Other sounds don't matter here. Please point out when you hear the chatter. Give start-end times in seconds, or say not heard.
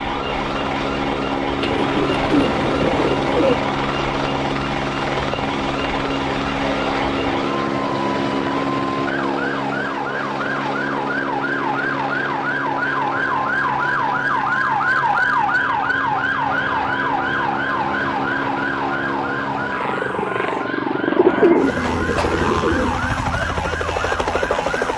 not heard.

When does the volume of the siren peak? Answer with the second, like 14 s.
15 s.